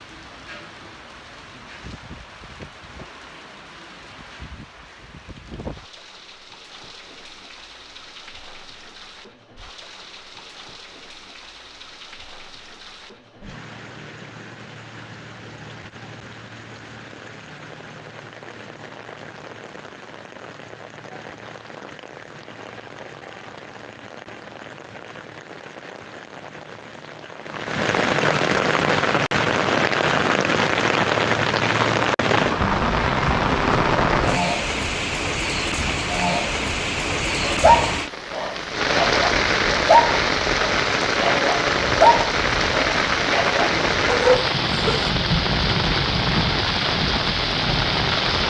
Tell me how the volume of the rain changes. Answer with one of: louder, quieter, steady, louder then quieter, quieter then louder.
louder.